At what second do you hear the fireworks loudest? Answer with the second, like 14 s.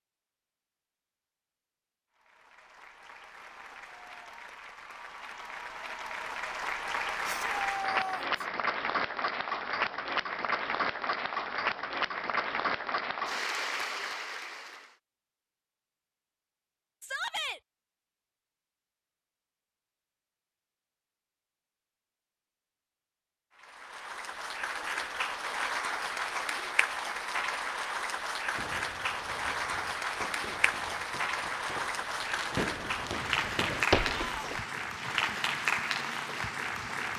34 s.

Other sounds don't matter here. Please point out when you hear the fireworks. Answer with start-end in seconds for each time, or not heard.
28.5-34.9.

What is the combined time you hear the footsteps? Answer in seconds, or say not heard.
not heard.